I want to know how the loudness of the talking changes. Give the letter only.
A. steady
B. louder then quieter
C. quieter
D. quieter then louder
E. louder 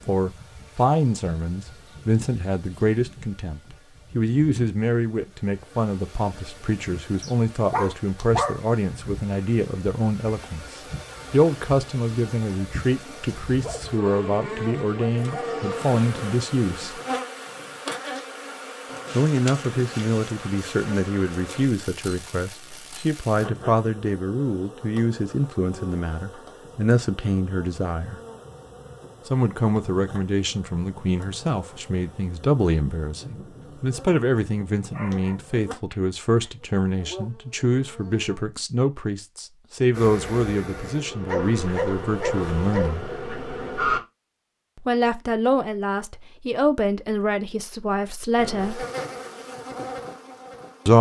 A.